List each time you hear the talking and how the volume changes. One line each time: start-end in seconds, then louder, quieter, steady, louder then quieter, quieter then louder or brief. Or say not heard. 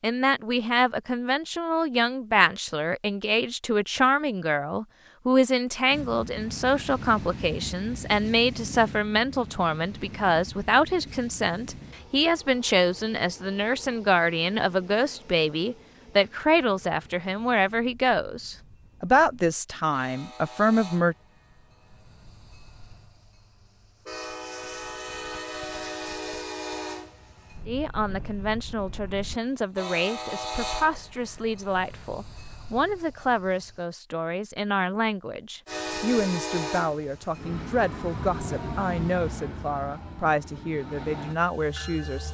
0.0-21.1 steady
27.6-42.2 steady.